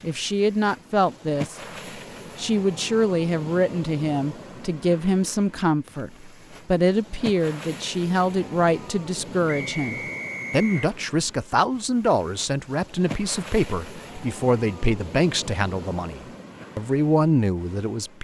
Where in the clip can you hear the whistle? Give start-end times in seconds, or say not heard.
9.4-10.9.